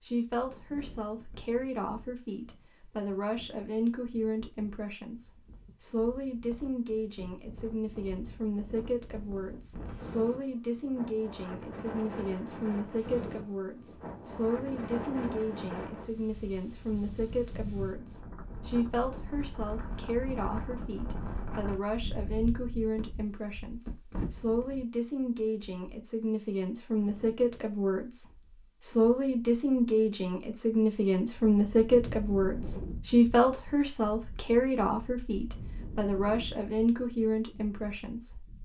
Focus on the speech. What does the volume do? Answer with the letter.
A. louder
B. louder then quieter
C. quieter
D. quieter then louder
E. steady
A.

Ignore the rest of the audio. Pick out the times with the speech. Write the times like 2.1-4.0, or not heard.
0.0-38.5.